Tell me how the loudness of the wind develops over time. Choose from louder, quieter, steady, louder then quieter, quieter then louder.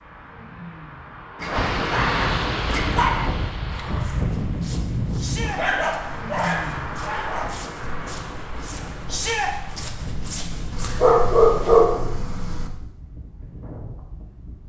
quieter.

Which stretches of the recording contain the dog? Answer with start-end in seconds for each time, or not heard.
1.4-3.3, 5.5-7.5, 10.7-12.7.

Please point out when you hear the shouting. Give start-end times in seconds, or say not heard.
5.2-5.6, 9.1-9.5.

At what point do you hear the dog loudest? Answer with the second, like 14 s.
12 s.